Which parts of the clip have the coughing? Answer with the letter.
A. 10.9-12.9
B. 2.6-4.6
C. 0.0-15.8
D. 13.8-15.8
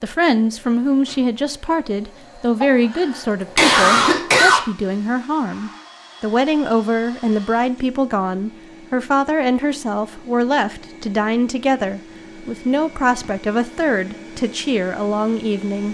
B.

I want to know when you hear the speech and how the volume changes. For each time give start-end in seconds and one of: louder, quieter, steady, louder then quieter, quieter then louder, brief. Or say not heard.
0.0-15.8 steady.